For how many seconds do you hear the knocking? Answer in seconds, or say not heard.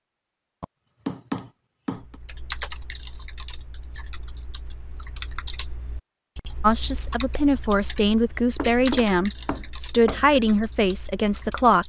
3 s.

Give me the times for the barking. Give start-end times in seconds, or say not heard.
not heard.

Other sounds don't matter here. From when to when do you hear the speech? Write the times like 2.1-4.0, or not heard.
6.6-11.8.